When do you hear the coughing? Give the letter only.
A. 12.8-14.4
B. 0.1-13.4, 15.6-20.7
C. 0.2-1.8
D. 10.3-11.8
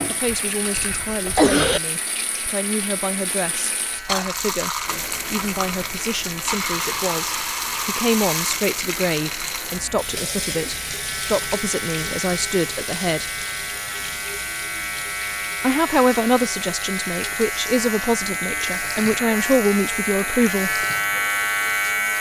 C.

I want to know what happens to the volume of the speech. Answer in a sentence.
The loudness of the speech goes up.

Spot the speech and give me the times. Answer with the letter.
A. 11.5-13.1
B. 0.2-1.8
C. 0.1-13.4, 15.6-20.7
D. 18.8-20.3
C.